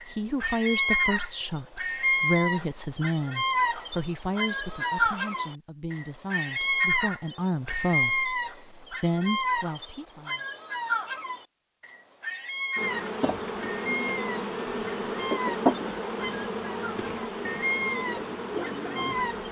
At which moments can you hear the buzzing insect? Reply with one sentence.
The buzzing insect can be heard from 12.8 to 19.4 s.